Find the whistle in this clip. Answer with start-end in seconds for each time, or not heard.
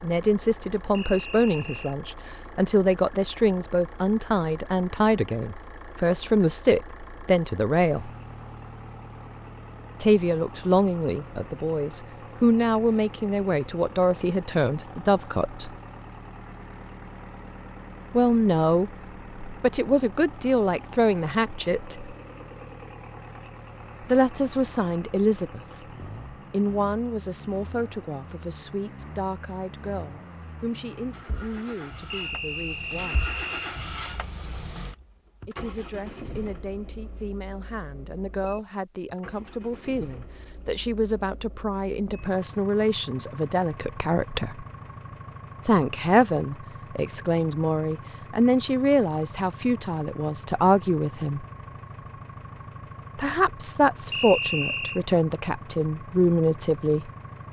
0.9-1.9, 32.1-33.8, 54.1-55.0.